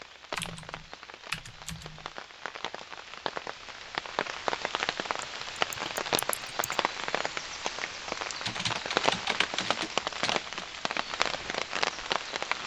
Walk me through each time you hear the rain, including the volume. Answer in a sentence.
The rain can be heard from 0.0 to 12.6 s, getting louder.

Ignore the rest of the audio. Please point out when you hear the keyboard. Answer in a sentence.
The keyboard can be heard from 0.3 to 2.1 s, from 5.2 to 6.8 s and from 8.4 to 10.7 s.